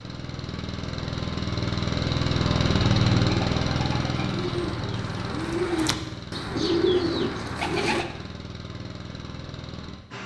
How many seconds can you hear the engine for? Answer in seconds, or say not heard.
10 s.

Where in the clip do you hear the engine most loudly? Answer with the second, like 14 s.
3 s.